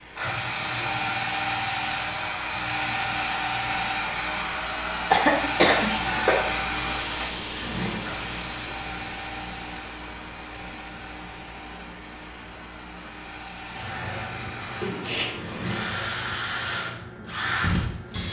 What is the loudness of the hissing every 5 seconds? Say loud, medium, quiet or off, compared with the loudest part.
quiet, loud, medium, medium.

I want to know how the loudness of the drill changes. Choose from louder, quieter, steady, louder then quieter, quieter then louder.
quieter then louder.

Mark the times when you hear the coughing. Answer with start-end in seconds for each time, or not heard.
5.1-6.3, 14.8-15.8.